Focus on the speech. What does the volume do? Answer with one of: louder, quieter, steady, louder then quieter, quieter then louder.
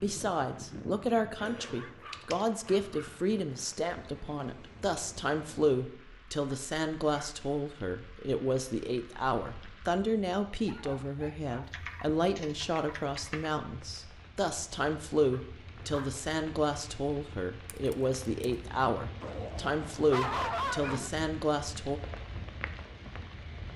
steady.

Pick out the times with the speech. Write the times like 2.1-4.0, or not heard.
0.0-22.0.